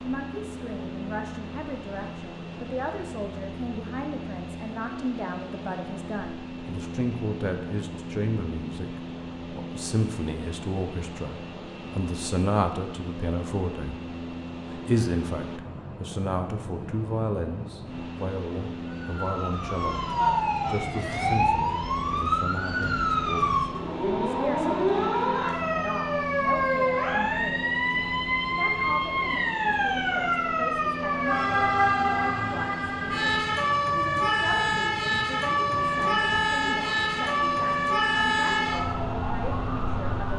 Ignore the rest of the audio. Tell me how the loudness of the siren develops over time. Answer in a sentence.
The volume of the siren stays about the same.